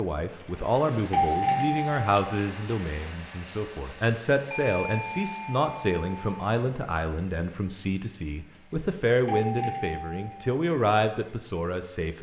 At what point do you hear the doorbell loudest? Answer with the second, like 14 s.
1 s.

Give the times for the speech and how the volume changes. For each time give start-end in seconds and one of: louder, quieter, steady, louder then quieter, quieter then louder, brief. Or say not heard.
0.0-12.1 steady.